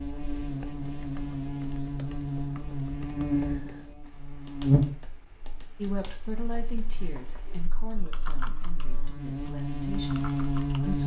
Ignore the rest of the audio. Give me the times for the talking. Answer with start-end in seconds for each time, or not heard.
5.8-11.0.